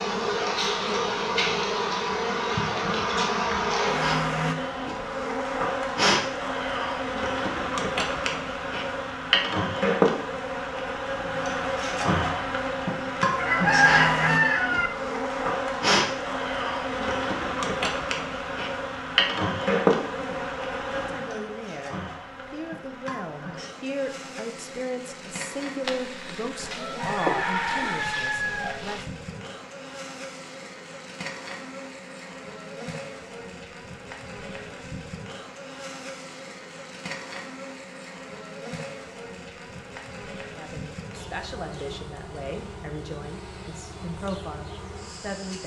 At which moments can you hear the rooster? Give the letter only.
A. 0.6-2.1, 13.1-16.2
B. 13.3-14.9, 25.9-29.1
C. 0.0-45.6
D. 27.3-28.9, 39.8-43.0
B.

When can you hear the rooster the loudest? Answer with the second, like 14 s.
14 s.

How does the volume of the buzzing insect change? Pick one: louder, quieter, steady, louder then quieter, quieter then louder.
quieter.